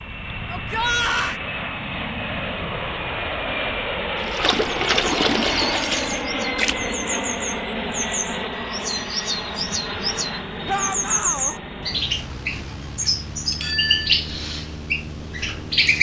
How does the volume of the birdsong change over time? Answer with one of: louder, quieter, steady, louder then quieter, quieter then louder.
louder.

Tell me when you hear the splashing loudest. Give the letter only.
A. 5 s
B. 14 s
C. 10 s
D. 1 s
A.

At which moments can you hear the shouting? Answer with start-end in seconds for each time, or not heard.
0.5-1.4, 10.7-11.6.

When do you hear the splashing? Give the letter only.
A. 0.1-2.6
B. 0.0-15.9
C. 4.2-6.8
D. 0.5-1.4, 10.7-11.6
C.